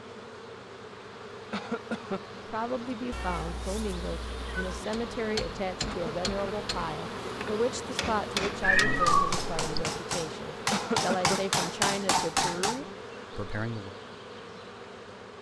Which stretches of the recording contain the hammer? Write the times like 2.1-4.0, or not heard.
5.2-12.8.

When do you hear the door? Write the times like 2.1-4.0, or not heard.
not heard.